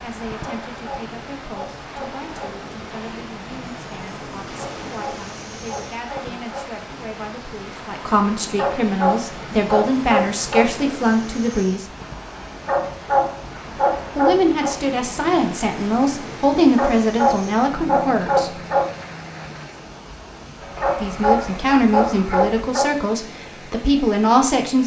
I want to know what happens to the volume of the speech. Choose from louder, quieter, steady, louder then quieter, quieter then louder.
louder.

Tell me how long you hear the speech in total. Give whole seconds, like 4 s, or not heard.
20 s.